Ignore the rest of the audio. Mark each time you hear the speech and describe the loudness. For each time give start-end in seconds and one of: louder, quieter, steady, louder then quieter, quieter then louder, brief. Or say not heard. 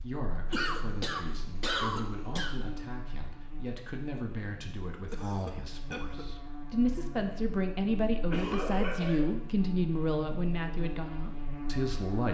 0.0-12.3 louder.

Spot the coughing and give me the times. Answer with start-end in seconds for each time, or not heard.
0.5-2.5, 4.9-6.2, 8.3-9.3.